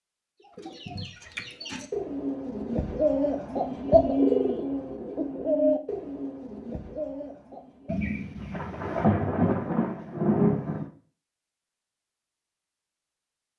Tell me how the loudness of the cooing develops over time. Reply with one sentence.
The volume of the cooing goes up, then down.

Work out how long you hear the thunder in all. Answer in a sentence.
You can hear the thunder for 3 seconds altogether.